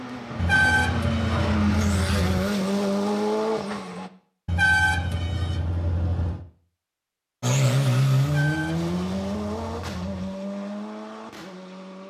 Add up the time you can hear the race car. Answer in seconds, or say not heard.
9 s.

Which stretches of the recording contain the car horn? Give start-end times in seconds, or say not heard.
0.3-2.4, 4.5-6.5, 8.2-10.2.